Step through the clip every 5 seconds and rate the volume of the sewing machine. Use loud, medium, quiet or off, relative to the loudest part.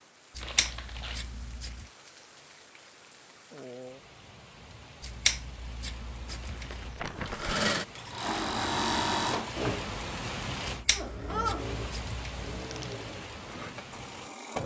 off, loud, medium.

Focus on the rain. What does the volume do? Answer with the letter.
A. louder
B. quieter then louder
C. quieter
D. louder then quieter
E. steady
A.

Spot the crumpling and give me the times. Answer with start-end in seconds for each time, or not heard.
0.4-1.2, 6.2-7.5, 12.6-13.1.